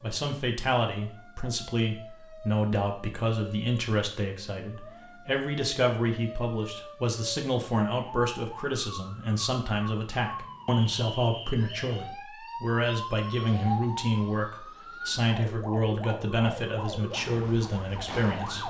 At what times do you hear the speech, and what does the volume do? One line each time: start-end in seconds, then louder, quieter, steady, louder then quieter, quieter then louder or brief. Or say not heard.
0.0-18.6 steady.